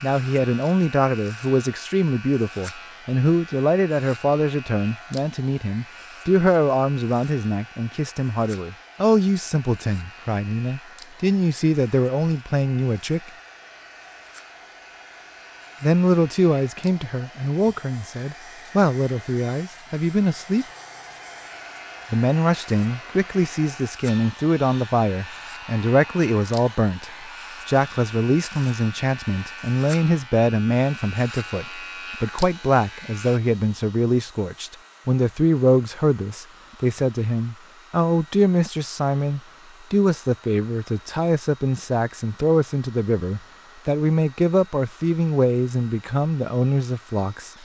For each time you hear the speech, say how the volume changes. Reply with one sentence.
You can hear the speech from 0.0 to 13.3 s, at a steady volume; from 15.8 to 20.6 s, getting quieter then louder; and from 22.1 to 47.5 s, at a steady volume.